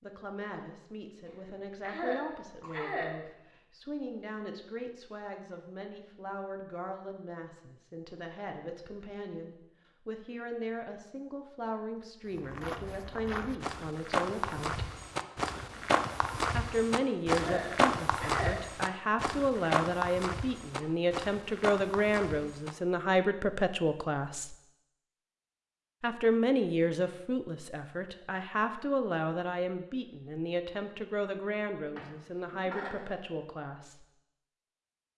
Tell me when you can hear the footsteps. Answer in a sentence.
The footsteps can be heard from 12.3 to 22.8 s.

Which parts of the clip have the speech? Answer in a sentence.
The speech can be heard from 0.0 to 14.9 s, from 16.5 to 24.6 s and from 26.0 to 34.0 s.